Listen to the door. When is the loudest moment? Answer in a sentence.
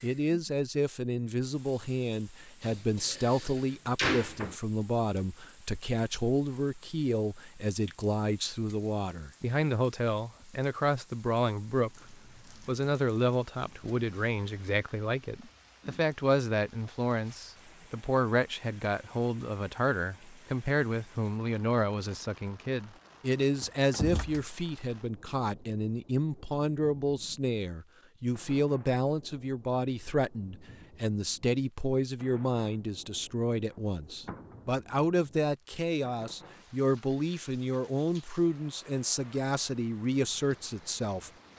The volume of the door peaks at 4 seconds.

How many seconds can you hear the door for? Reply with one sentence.
You can hear the door for 4 seconds altogether.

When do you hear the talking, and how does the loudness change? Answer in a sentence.
You can hear the talking from 0.0 to 41.3 s, at a steady volume.